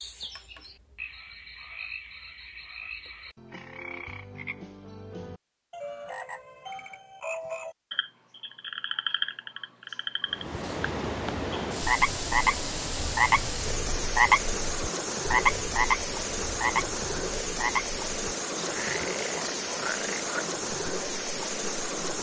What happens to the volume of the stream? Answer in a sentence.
The volume of the stream stays about the same.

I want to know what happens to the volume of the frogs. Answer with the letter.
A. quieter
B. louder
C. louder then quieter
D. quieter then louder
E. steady
C.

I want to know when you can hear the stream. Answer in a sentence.
The stream can be heard from 10.2 to 22.1 s.